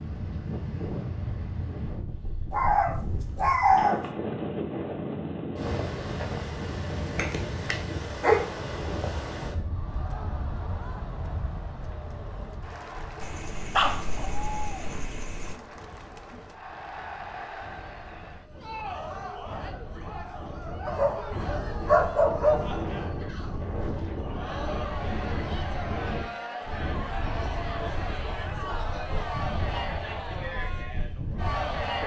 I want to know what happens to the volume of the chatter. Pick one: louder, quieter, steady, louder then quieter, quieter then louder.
louder.